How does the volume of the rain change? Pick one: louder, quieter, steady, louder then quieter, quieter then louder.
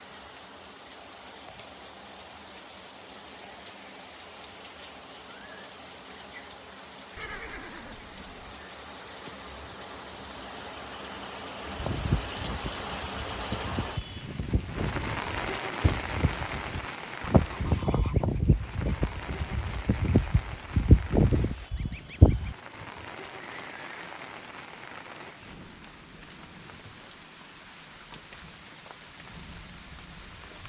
louder then quieter.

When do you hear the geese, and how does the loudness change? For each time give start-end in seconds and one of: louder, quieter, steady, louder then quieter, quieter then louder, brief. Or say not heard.
11.8-22.6 louder.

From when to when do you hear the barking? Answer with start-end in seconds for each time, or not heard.
not heard.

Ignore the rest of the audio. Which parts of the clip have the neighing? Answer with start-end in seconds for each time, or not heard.
7.2-8.5, 23.4-24.0.